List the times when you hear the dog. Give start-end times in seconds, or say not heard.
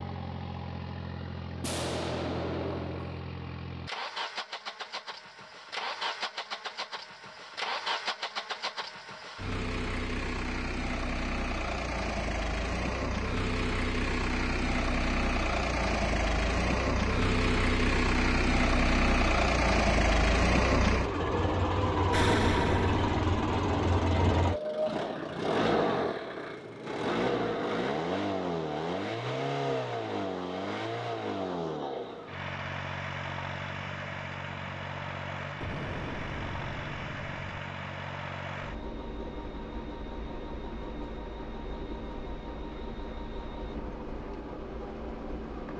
not heard.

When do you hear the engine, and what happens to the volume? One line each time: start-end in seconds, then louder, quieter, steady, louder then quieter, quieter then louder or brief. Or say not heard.
0.0-45.7 louder then quieter.